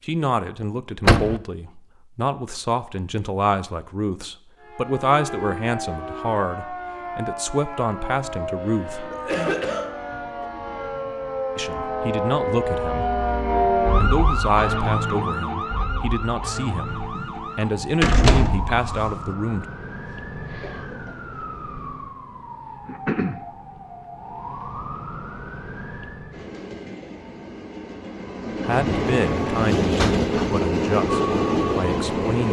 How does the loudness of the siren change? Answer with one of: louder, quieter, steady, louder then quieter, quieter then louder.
louder then quieter.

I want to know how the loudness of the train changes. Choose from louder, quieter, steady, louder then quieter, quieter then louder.
louder.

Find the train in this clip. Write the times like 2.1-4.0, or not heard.
26.3-32.4.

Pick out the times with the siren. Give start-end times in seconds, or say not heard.
4.6-26.5.